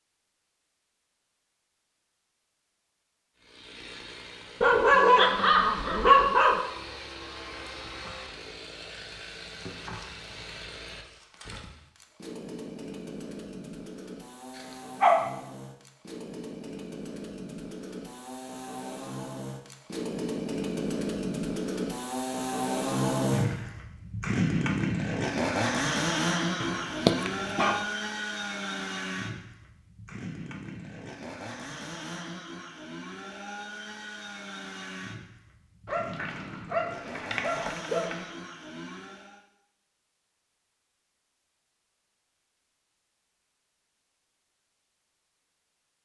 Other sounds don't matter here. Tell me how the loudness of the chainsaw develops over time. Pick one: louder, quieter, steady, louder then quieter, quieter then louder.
louder then quieter.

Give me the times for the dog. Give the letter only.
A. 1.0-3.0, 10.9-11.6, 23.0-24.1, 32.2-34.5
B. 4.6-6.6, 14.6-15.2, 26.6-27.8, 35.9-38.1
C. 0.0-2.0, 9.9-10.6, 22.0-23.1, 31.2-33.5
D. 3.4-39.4
B.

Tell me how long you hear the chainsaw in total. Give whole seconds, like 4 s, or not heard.
36 s.